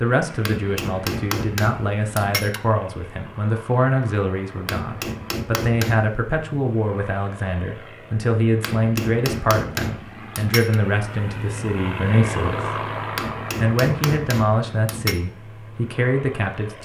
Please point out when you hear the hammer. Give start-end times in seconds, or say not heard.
0.5-2.6, 4.7-6.2, 8.6-10.8, 13.2-15.2.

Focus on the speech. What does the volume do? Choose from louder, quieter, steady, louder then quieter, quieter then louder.
steady.